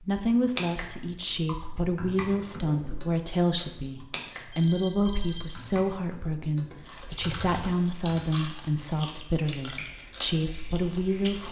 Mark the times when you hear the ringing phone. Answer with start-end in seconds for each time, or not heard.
4.5-5.5.